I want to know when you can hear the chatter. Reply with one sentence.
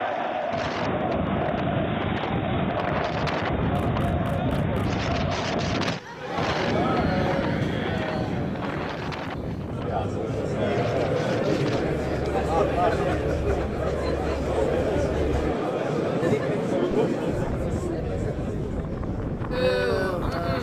The chatter can be heard from 0.0 to 20.5 s.